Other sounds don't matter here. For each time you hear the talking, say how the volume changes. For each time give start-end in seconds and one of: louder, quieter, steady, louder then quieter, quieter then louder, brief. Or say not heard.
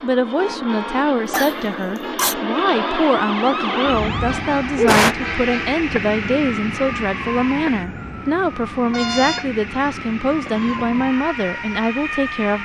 0.0-12.6 steady.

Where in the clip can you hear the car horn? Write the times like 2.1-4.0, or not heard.
0.3-1.1, 2.0-2.5, 4.2-5.8, 8.9-9.5.